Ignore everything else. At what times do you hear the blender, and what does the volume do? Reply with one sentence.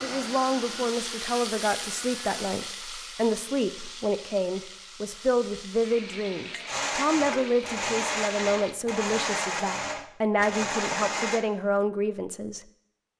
You can hear the blender briefly from 0.0 to 2.6 s; and from 6.7 to 11.4 s, at a steady volume.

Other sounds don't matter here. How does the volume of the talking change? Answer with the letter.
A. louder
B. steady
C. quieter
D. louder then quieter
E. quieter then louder
B.